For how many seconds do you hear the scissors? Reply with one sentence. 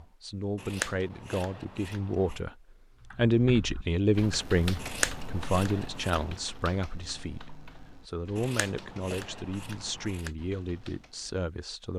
You can hear the scissors for 5 seconds altogether.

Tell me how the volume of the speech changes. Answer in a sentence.
The loudness of the speech goes up, then down.